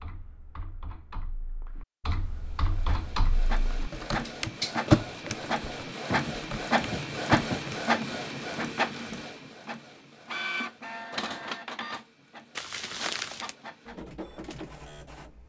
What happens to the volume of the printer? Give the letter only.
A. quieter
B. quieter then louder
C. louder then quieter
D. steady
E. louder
C.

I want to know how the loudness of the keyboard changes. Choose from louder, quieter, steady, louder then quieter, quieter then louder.
louder then quieter.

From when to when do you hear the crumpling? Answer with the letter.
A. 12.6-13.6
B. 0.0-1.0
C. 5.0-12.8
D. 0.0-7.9
A.